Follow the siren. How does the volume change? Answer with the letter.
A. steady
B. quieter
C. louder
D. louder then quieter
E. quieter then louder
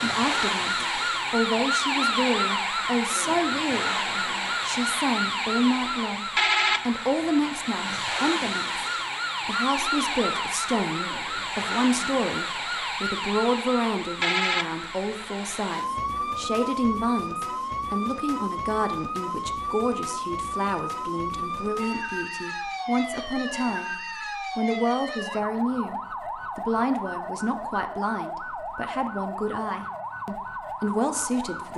B.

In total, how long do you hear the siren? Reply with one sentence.
You can hear the siren for 32 seconds altogether.